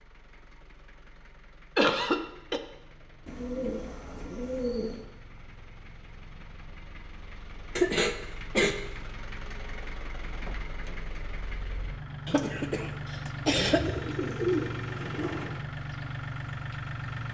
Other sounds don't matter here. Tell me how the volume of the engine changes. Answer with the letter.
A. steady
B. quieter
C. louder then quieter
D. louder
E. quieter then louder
D.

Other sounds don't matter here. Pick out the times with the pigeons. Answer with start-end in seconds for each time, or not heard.
3.2-5.0, 13.7-15.4.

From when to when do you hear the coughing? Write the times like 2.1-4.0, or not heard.
1.8-2.6, 7.8-8.8, 12.2-13.8.